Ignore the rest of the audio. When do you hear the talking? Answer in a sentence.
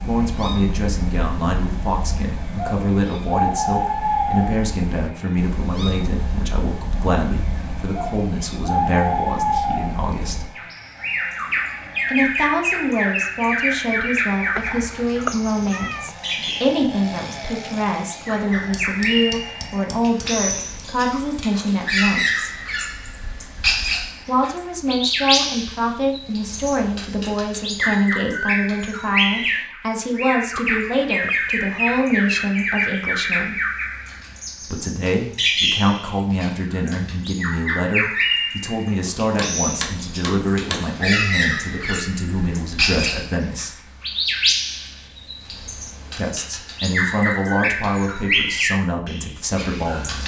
The talking can be heard from 0.0 to 10.5 s, from 12.1 to 22.5 s, from 24.2 to 33.5 s, from 34.6 to 43.9 s and from 46.1 to 50.2 s.